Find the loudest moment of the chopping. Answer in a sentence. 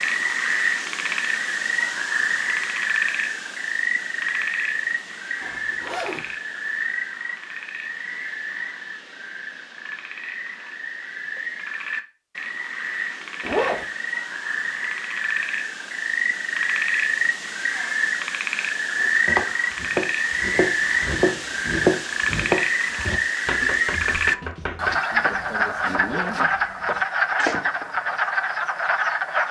The loudest moment of the chopping is at 22 seconds.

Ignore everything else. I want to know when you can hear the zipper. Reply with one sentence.
The zipper can be heard from 5.4 to 6.3 s, from 13.4 to 13.8 s and from 26.0 to 26.4 s.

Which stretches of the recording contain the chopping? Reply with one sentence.
The chopping can be heard from 18.9 to 28.2 s.